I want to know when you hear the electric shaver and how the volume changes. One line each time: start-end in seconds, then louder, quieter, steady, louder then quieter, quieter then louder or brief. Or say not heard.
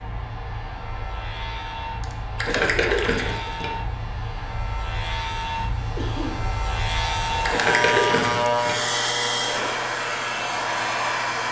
0.0-11.4 louder then quieter.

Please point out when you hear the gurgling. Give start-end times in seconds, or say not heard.
2.4-3.7, 7.4-8.8.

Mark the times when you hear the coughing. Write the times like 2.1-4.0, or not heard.
2.0-2.9, 6.0-6.5.